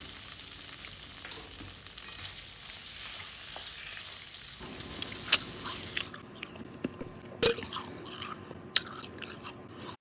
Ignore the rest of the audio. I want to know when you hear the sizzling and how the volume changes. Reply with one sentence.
The sizzling can be heard from 0.0 to 6.2 s, at a steady volume.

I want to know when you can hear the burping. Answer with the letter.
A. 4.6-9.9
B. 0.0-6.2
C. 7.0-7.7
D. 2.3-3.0
C.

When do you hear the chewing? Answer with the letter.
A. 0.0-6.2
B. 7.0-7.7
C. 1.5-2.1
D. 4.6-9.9
D.